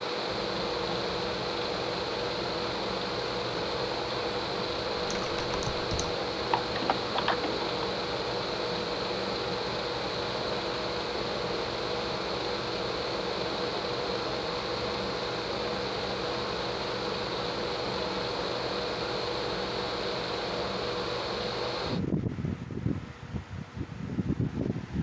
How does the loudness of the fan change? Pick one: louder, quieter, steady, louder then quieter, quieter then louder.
steady.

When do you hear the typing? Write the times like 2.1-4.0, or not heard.
5.0-7.7.